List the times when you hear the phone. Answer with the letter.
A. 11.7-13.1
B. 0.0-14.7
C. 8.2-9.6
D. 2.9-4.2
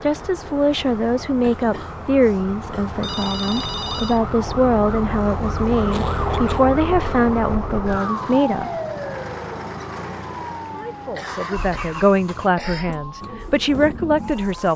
D.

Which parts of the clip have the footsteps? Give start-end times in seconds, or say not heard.
not heard.